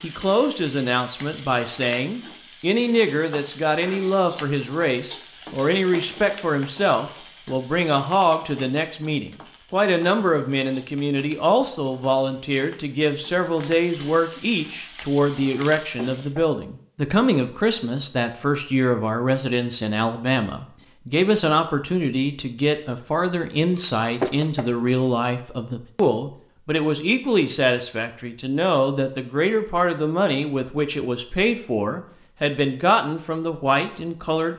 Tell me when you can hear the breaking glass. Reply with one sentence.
The breaking glass can be heard from 5.5 to 6.2 s, from 15.5 to 16.5 s and from 23.8 to 24.7 s.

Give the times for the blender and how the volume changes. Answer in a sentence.
You can't hear the blender here.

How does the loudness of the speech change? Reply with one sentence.
The volume of the speech stays about the same.